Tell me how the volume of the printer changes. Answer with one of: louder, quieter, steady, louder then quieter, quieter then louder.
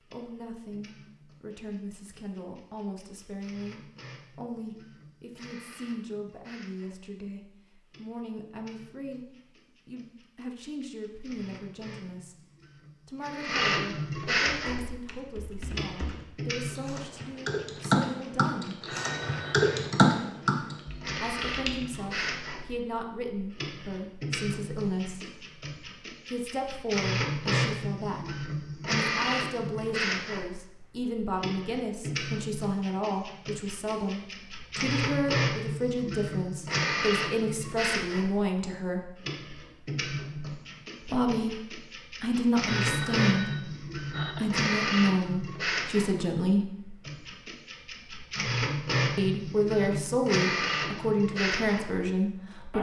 louder.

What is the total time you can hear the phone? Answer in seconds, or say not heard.
3 s.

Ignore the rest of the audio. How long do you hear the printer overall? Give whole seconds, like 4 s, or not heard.
53 s.